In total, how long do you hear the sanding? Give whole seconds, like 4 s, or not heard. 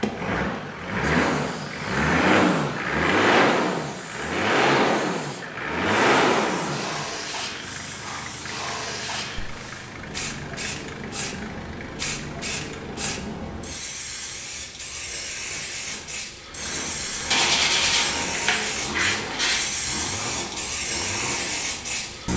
2 s.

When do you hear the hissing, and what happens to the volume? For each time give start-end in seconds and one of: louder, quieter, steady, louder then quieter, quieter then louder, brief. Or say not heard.
0.0-22.3 louder.